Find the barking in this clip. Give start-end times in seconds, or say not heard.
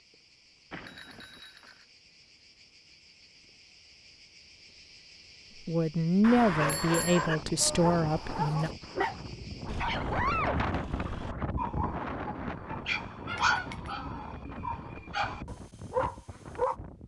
6.5-16.8.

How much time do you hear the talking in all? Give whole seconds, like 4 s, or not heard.
3 s.